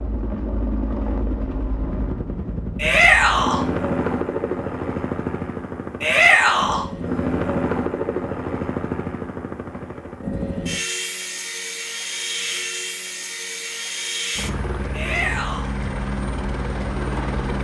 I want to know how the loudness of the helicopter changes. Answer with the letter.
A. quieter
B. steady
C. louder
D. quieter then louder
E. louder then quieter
B.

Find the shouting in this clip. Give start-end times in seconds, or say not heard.
2.8-3.6, 6.0-6.8, 14.9-15.7.